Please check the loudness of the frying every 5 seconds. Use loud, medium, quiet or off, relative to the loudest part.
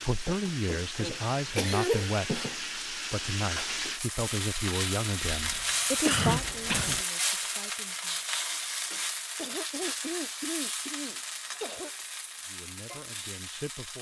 loud, loud, medium.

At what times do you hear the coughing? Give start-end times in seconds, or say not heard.
1.0-2.1, 5.2-7.0, 9.3-11.9.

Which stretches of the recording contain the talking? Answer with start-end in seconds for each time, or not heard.
0.0-8.2, 12.4-13.9.